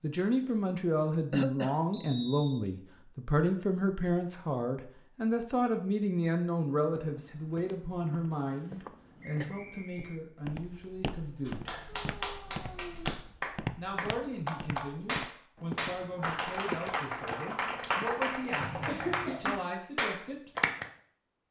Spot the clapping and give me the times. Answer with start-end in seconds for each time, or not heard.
11.4-20.9.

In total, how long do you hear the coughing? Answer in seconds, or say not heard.
3 s.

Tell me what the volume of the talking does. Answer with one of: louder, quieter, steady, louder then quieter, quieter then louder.
quieter.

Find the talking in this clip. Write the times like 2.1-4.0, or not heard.
0.0-11.8, 13.8-20.5.